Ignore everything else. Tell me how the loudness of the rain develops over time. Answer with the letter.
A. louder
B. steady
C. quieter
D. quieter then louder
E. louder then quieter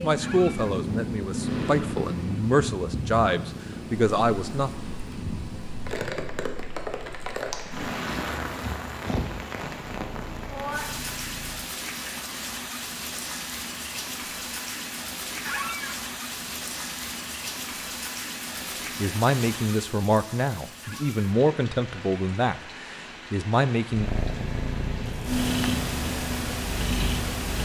C.